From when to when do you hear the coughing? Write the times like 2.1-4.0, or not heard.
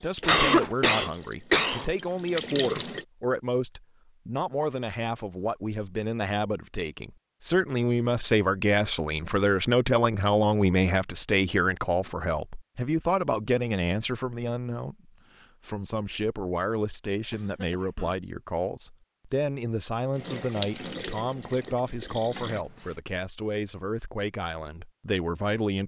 0.2-1.9, 17.3-18.1.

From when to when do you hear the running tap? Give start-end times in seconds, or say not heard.
0.0-3.0, 20.1-22.9.